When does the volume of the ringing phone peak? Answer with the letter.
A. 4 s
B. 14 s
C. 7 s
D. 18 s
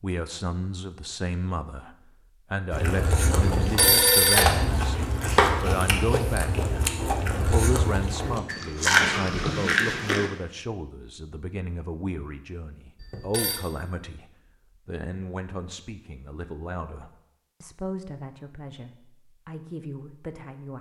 A.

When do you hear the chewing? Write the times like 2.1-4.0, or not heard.
2.7-10.3.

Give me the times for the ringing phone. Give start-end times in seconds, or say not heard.
3.4-4.6, 13.0-13.6.